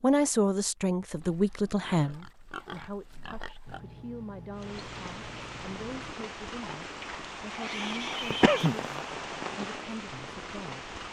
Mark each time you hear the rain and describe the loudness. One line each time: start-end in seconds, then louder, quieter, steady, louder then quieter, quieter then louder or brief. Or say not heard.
4.6-11.0 louder then quieter.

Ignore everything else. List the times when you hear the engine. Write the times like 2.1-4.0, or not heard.
3.6-6.2.